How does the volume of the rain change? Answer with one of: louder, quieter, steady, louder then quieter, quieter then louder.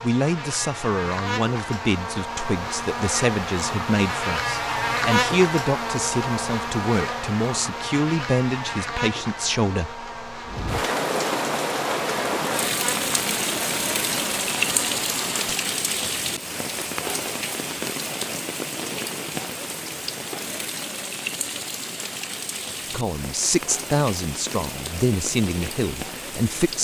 quieter.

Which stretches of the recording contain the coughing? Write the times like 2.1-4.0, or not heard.
not heard.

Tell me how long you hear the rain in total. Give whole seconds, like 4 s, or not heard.
16 s.